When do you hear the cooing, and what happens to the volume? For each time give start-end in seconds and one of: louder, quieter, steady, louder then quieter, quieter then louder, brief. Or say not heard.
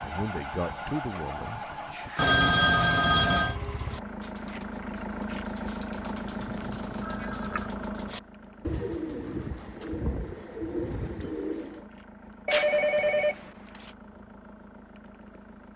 3.5-11.9 louder.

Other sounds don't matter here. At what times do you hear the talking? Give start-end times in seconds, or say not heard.
0.0-2.1.